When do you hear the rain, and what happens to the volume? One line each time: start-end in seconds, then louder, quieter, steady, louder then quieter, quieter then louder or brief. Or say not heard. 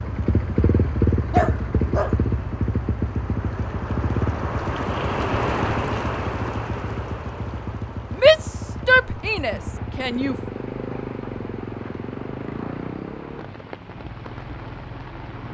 0.0-15.4 louder then quieter.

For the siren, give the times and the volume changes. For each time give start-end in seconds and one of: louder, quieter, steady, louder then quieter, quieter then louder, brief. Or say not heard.
not heard.